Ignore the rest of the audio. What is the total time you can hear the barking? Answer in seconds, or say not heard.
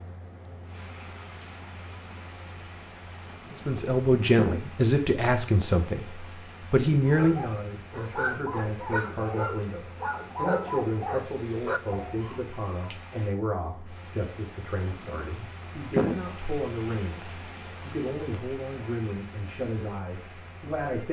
5 s.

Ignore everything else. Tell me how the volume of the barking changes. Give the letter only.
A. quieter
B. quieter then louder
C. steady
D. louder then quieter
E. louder
C.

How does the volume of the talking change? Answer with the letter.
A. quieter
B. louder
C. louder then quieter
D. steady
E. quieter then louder
A.